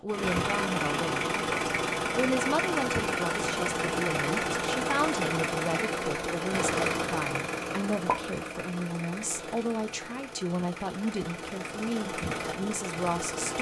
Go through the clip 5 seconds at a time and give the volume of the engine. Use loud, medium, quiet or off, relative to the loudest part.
loud, loud, medium.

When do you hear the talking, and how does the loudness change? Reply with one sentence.
The talking can be heard from 0.0 to 13.5 s, at a steady volume.